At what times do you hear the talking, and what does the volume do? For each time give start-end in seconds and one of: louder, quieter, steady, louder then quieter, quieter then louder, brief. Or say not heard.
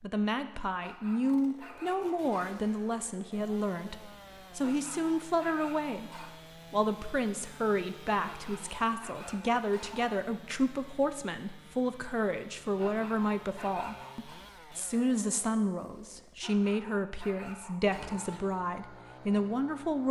0.0-20.0 steady.